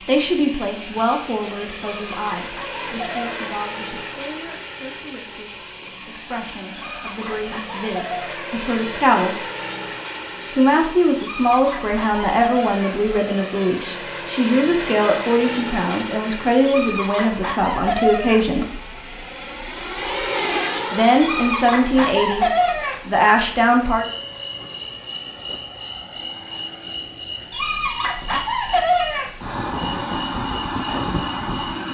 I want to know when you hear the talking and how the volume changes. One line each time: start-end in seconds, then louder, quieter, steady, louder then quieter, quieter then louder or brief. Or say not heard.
0.1-9.4 quieter then louder
10.6-18.8 steady
20.9-22.4 brief
23.1-24.1 brief.